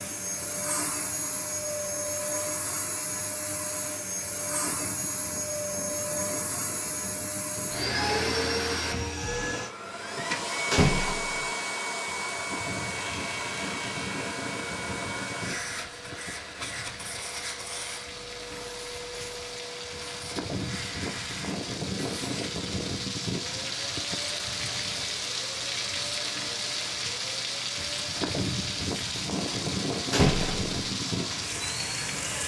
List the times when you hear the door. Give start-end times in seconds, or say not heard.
10.7-11.5, 30.1-30.8.